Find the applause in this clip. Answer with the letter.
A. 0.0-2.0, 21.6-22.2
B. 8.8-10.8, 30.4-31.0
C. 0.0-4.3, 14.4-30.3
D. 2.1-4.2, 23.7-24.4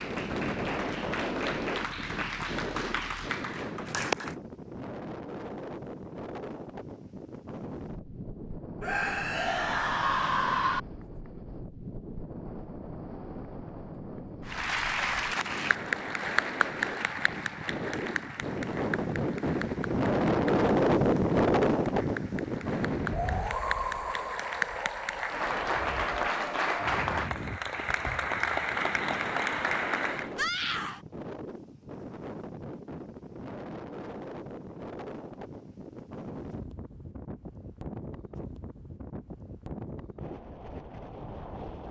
C.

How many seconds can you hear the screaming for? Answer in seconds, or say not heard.
3 s.